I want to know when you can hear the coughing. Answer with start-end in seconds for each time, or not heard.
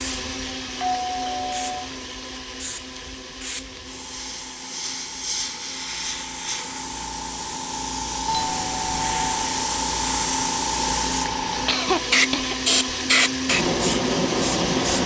11.7-12.6.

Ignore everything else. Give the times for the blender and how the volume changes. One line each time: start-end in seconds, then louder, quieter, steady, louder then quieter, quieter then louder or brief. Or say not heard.
0.0-15.0 quieter then louder.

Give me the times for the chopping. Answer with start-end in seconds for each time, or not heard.
not heard.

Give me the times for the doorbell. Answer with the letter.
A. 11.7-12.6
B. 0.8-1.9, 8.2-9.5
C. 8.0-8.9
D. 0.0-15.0
B.